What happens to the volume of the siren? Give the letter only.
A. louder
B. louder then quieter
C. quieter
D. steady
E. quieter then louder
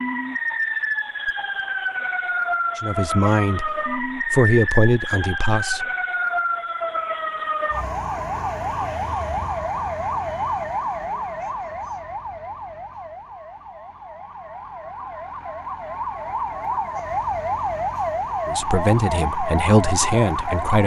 E.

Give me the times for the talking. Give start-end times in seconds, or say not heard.
2.8-5.8, 18.4-20.8.